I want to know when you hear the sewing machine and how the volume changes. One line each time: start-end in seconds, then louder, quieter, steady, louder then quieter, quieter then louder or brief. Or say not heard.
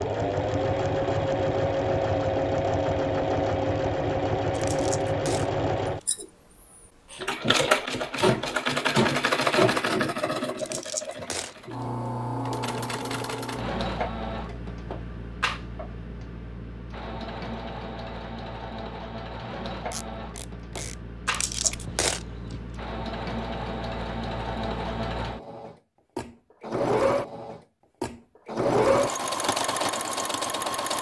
0.0-30.9 quieter then louder.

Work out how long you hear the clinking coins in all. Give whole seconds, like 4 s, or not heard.
4 s.